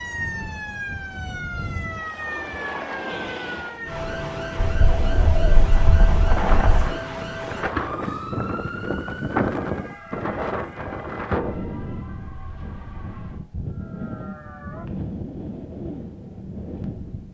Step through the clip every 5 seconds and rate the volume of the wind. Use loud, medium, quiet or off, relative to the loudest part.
medium, loud, loud, medium.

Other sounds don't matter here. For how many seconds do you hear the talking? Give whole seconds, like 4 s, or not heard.
not heard.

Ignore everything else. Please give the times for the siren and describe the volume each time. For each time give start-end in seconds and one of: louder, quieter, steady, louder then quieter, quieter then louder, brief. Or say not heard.
0.0-14.9 quieter.